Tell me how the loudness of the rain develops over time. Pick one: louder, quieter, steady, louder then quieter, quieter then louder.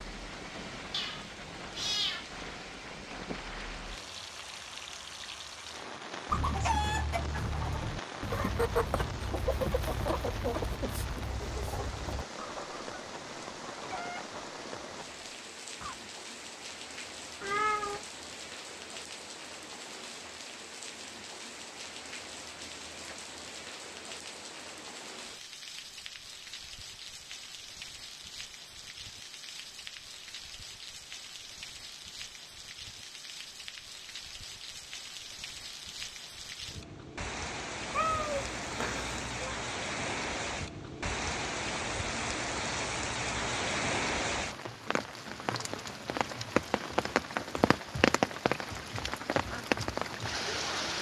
louder.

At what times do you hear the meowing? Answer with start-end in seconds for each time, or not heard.
0.9-2.2, 17.4-18.1, 37.9-39.5.